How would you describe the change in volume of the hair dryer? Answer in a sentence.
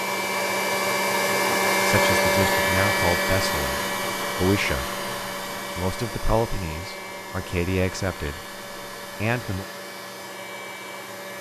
The loudness of the hair dryer goes down.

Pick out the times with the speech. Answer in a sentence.
The speech can be heard from 1.9 to 4.9 s, from 5.8 to 8.4 s and from 9.2 to 9.7 s.